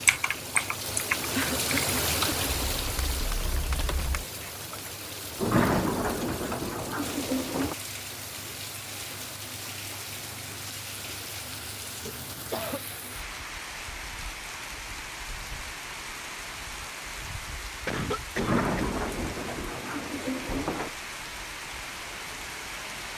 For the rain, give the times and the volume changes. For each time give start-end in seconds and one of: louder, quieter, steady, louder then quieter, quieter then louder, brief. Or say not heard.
0.0-23.1 quieter.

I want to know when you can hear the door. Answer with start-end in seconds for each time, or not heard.
5.3-7.8, 18.4-20.9.